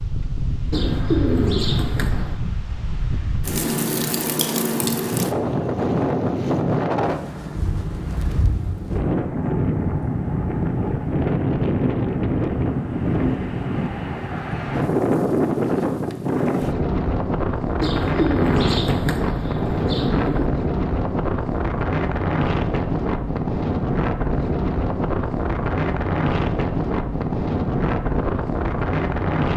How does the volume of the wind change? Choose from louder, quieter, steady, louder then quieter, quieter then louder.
steady.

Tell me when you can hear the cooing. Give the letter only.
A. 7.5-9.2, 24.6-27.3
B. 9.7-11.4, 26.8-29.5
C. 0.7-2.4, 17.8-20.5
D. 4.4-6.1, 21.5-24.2
C.